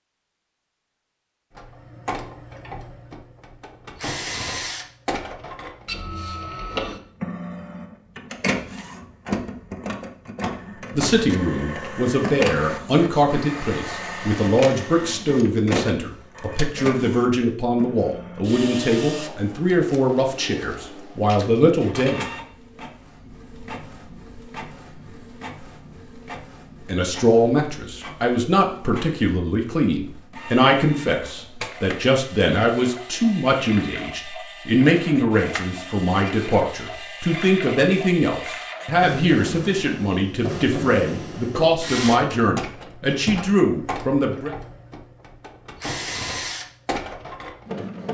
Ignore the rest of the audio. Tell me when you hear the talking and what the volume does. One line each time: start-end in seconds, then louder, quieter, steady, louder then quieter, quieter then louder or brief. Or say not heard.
10.9-22.2 steady
26.9-44.5 steady.